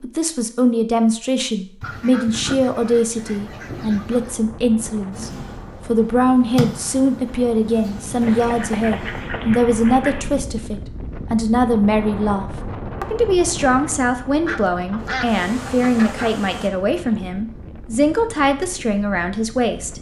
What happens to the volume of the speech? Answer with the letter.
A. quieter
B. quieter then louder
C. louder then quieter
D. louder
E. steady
E.